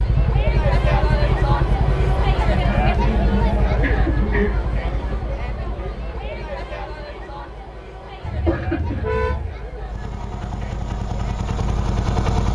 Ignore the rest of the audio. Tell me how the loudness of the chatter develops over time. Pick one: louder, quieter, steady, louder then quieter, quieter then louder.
quieter.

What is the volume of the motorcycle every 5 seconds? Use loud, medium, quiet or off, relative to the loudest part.
loud, quiet, loud.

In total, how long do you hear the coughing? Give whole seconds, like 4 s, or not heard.
3 s.